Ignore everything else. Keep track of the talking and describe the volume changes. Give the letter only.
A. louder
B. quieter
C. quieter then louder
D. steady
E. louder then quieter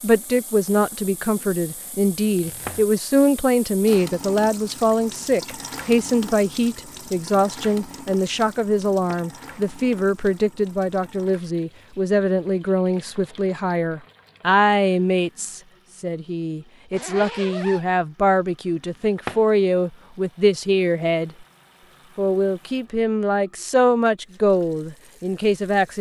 D.